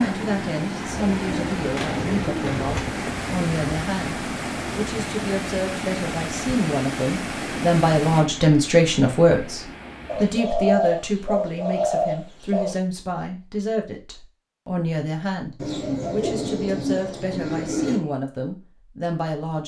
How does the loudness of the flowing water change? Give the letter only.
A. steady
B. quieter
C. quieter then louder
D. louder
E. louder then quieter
B.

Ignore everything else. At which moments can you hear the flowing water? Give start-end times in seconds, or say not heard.
0.0-10.5.